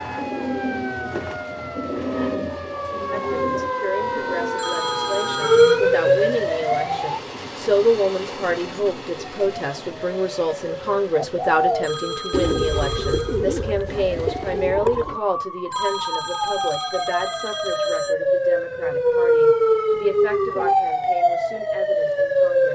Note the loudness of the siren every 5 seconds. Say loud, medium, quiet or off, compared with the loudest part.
medium, loud, quiet, loud, loud.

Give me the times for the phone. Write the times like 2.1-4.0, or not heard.
4.5-5.8, 11.8-13.4, 15.7-18.1.